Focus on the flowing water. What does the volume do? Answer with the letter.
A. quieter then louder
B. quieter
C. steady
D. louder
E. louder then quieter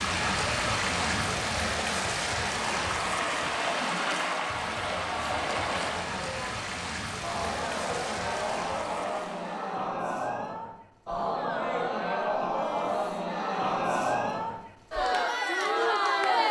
B.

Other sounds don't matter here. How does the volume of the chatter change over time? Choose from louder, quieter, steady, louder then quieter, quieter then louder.
louder.